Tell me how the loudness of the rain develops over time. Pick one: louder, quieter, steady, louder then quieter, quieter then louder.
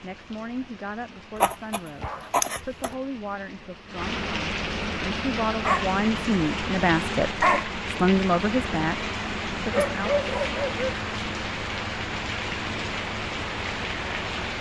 louder.